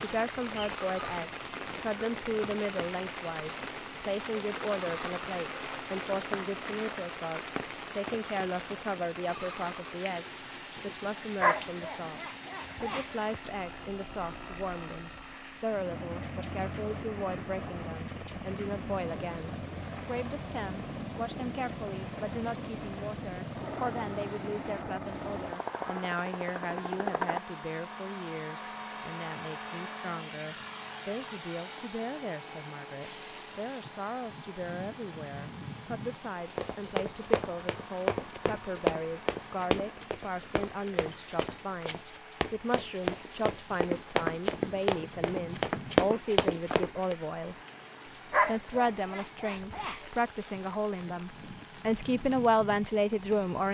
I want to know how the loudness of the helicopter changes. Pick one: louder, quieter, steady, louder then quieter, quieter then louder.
louder then quieter.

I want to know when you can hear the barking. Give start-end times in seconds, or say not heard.
11.4-13.4, 48.3-50.0.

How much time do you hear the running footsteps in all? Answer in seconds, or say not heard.
11 s.